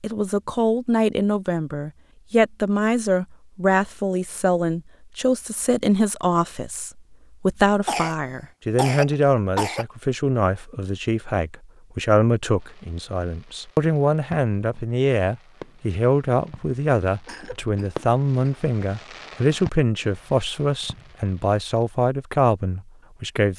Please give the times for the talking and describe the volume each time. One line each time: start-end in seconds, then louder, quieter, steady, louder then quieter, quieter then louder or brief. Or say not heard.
0.0-23.5 steady.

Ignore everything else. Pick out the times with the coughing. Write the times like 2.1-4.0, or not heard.
7.8-9.8, 17.2-18.6.